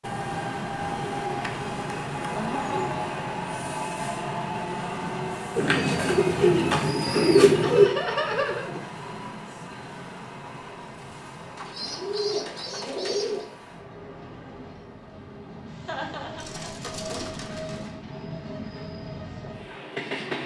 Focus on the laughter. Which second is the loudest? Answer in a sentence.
The volume of the laughter peaks at 8 seconds.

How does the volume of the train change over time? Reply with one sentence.
The volume of the train goes down, then up.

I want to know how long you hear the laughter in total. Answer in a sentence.
You can hear the laughter for 3 seconds altogether.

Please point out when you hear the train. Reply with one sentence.
You can hear the train from 0.0 to 20.4 s.